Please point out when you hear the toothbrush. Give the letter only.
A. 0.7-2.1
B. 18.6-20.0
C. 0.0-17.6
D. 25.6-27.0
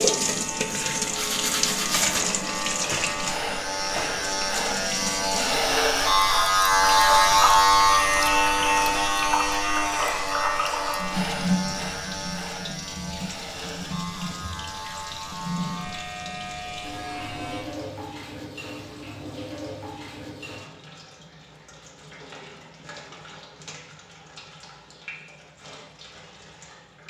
A.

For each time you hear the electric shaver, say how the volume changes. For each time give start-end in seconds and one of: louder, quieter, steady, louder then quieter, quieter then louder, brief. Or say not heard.
0.0-17.6 louder then quieter.